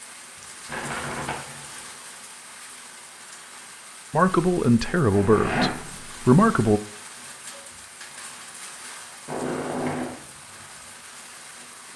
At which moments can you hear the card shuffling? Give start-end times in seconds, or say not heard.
0.7-1.6, 5.0-6.3, 9.2-10.2.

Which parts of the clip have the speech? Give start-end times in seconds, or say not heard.
4.1-6.8.